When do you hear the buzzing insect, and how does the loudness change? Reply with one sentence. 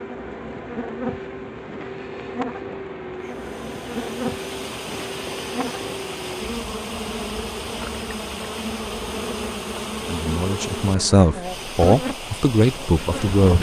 The buzzing insect can be heard from 0.0 to 13.5 s, at a steady volume.